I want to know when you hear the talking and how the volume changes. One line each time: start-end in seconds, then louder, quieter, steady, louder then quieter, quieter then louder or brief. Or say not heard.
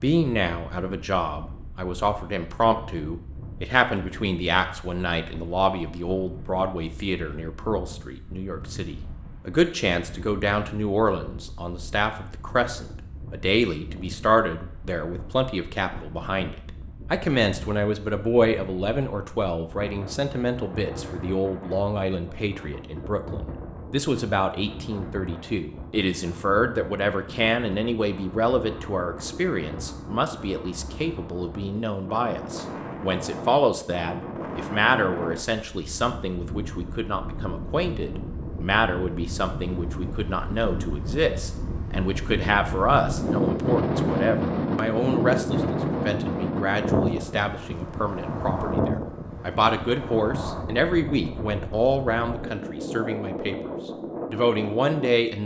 0.0-55.4 steady.